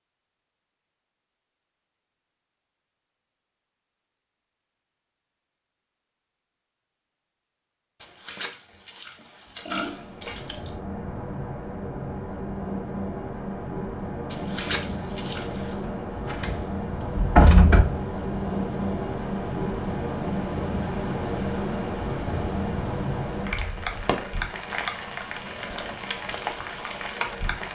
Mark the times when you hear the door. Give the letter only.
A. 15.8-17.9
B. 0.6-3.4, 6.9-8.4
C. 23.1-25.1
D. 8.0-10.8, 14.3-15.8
A.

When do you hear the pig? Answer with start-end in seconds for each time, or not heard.
8.0-10.8, 14.3-15.8.